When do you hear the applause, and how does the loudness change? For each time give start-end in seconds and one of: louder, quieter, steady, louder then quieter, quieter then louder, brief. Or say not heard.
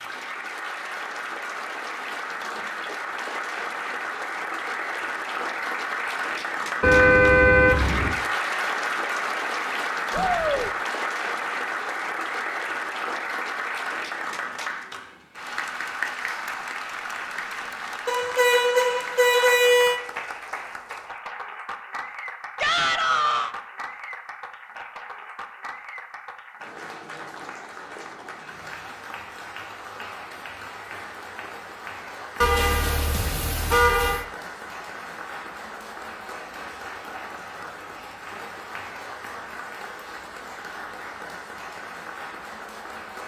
0.0-43.2 quieter.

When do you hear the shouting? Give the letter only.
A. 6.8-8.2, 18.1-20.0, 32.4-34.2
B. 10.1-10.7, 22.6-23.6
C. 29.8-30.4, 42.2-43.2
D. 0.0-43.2
B.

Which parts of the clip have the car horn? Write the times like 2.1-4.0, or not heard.
6.8-8.2, 18.1-20.0, 32.4-34.2.